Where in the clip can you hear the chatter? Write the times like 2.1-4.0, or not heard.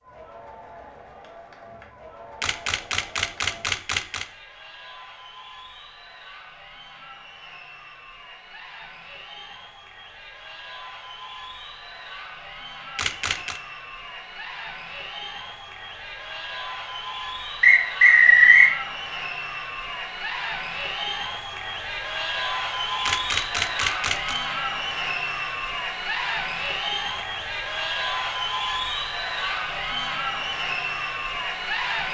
0.0-32.1.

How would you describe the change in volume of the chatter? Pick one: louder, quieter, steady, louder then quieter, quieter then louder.
louder.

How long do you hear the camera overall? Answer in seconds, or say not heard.
4 s.